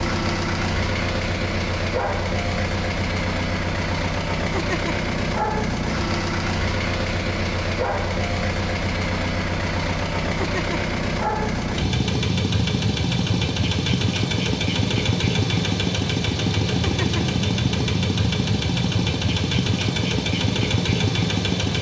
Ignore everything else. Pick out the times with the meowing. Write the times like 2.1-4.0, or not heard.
4.4-5.0, 10.2-10.8, 16.6-17.2.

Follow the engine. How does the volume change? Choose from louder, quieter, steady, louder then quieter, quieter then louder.
steady.